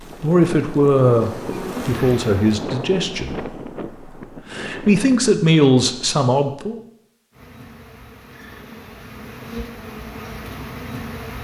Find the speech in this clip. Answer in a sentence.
You can hear the speech from 0.2 to 3.5 s and from 4.5 to 6.8 s.